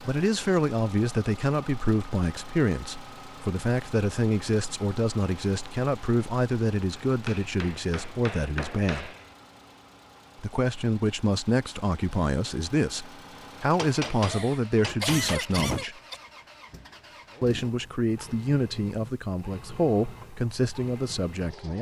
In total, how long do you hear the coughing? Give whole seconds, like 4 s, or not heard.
2 s.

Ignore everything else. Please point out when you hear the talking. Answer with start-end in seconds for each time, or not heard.
0.0-9.1, 10.4-15.9, 17.4-21.7.